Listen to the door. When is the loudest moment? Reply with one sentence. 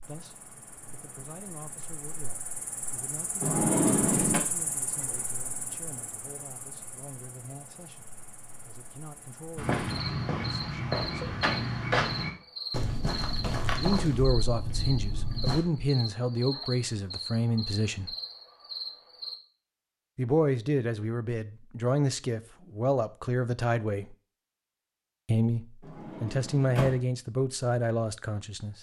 The loudest moment of the door is at 4 seconds.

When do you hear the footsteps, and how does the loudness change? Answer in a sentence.
The footsteps can be heard from 9.6 to 15.6 s, getting quieter.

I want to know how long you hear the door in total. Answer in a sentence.
The door can be heard for 2 seconds in total.